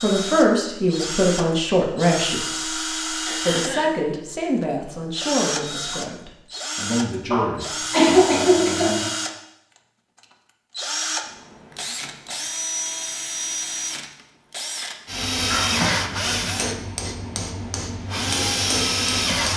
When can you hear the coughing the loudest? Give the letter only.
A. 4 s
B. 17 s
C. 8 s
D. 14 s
C.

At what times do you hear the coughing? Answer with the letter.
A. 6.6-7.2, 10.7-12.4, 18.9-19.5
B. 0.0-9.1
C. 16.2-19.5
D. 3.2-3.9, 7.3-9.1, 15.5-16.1
D.